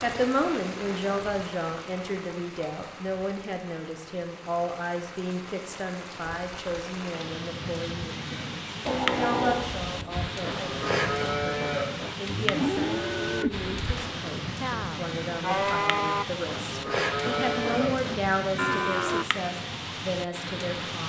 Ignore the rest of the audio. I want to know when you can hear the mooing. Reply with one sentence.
The mooing can be heard from 8.8 to 19.2 s.